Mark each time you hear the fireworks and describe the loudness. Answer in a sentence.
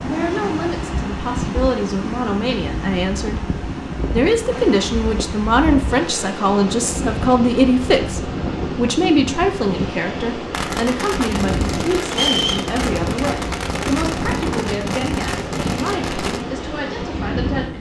The fireworks can be heard from 10.5 to 16.4 s, at a steady volume.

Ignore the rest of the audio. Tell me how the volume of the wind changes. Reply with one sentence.
The volume of the wind stays about the same.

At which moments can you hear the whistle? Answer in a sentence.
The whistle can be heard from 12.1 to 12.7 s.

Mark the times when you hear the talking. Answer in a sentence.
You can hear the talking from 0.0 to 17.7 s.